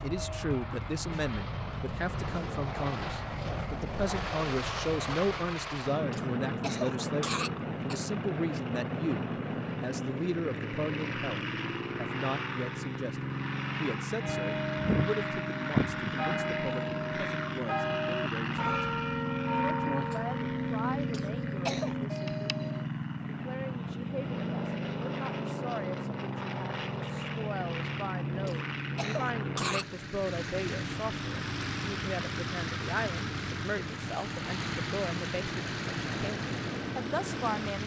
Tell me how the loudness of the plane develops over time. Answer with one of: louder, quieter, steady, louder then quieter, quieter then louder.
steady.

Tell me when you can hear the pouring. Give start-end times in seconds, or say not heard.
not heard.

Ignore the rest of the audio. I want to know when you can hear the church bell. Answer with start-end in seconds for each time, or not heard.
14.2-22.9.